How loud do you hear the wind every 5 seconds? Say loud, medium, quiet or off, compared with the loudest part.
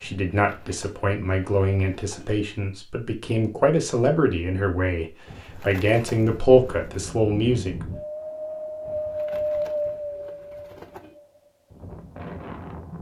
off, loud, medium.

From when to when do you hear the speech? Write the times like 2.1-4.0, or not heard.
0.0-7.8.